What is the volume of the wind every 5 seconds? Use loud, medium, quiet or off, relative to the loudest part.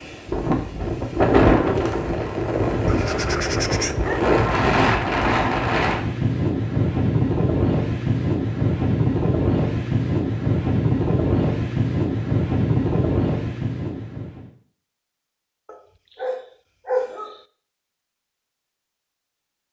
loud, loud, loud, off.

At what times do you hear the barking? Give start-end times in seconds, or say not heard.
2.9-4.3, 15.7-17.4.